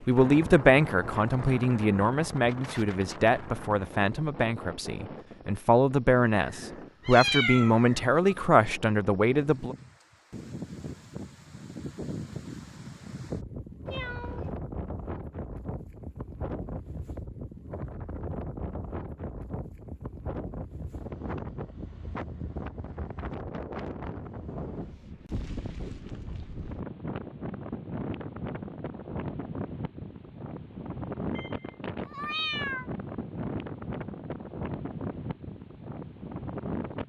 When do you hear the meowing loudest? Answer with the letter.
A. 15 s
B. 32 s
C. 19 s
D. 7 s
D.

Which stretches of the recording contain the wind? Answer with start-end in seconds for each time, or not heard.
0.0-37.0.